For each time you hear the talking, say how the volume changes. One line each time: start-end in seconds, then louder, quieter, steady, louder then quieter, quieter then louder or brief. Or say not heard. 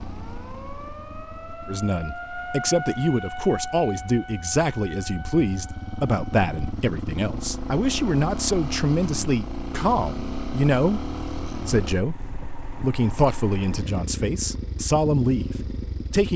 1.6-16.3 steady.